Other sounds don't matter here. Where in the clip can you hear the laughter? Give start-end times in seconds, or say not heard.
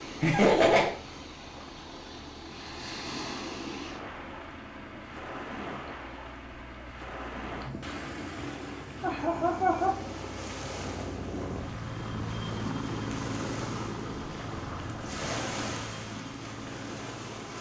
0.2-0.9, 9.0-9.9.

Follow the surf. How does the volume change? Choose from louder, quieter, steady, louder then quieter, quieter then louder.
steady.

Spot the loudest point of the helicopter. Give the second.
13 s.